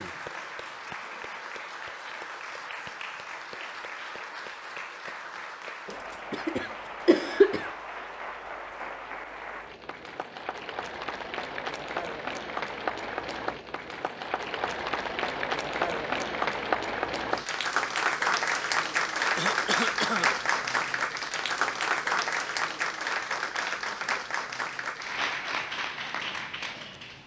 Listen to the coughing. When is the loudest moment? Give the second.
7 s.